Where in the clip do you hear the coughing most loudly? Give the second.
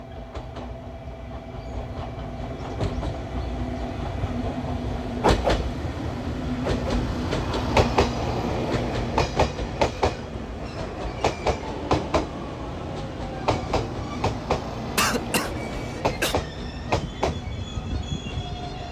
15 s.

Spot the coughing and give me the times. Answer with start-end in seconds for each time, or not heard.
14.9-16.4.